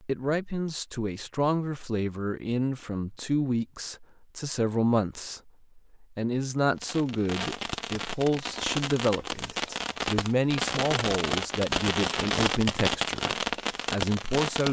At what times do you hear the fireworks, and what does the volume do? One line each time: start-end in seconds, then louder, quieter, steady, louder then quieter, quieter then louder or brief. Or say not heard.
6.8-14.6 louder.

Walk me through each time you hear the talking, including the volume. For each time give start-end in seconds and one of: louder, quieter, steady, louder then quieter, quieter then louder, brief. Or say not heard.
0.0-14.6 steady.